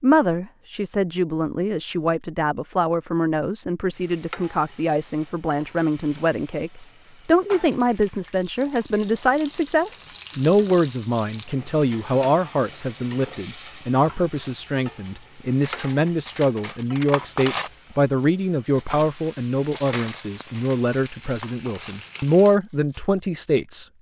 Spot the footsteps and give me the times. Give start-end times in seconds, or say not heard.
not heard.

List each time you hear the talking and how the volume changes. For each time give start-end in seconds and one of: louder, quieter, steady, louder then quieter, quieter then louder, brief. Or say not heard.
0.0-23.9 steady.